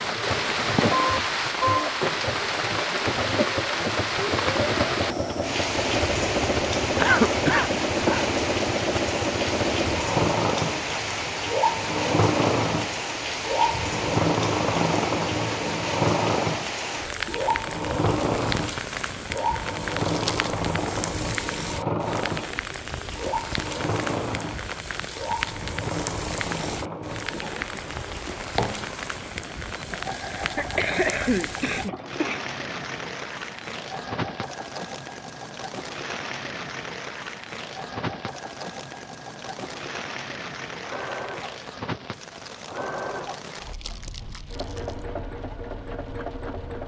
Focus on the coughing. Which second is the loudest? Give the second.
7 s.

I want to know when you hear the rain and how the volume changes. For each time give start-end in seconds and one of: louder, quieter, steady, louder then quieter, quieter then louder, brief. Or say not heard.
0.0-46.8 quieter.